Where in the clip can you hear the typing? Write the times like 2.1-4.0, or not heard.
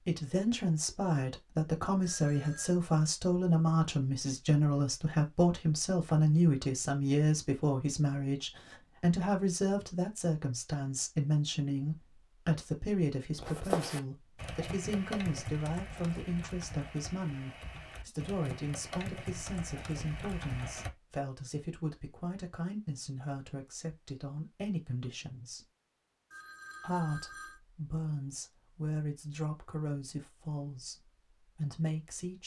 13.3-20.9.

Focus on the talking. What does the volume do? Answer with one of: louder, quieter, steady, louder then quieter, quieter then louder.
quieter.